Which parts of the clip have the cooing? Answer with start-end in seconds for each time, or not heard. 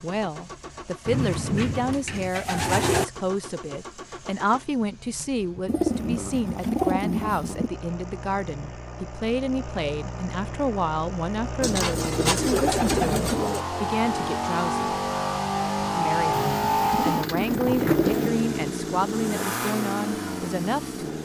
1.1-3.0, 5.7-7.7, 11.6-13.7, 16.3-18.3.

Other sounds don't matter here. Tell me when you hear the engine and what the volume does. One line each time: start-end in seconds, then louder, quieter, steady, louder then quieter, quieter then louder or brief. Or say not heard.
0.0-21.2 louder.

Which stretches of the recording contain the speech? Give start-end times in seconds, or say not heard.
0.0-14.9, 15.9-21.2.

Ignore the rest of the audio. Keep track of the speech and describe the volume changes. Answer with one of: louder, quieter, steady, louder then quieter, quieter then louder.
steady.